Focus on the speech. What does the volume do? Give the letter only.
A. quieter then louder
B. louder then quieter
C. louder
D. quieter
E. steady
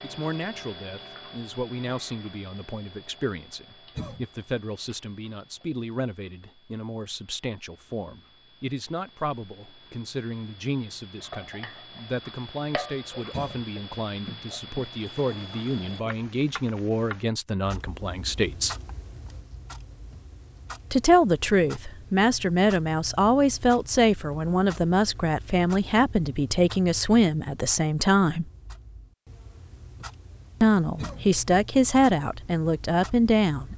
C.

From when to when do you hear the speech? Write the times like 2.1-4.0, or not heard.
0.0-18.8, 20.9-28.4, 30.6-33.7.